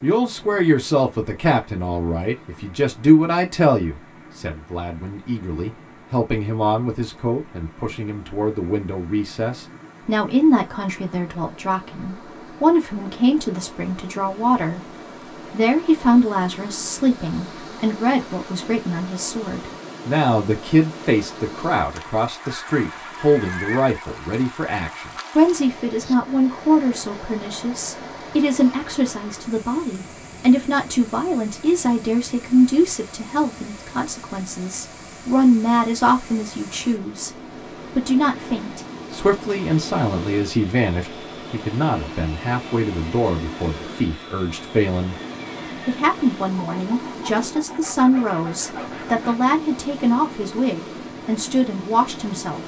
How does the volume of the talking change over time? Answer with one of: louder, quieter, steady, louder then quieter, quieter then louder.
steady.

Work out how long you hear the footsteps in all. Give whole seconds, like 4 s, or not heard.
not heard.